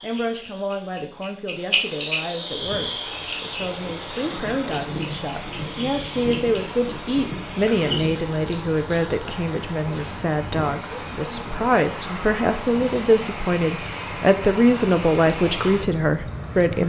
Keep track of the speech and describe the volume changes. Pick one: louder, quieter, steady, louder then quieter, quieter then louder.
louder.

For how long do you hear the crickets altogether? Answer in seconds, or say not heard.
17 s.